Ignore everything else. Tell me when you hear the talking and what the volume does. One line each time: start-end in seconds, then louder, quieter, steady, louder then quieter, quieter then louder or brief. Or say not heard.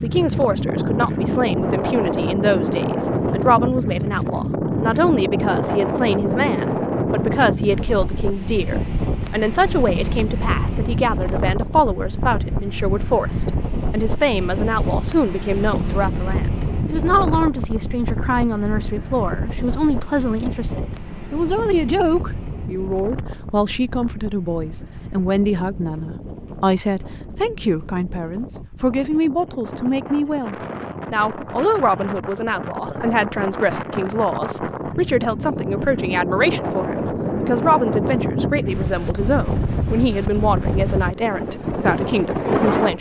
0.0-42.9 steady.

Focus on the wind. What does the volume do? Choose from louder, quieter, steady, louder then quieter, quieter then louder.
quieter then louder.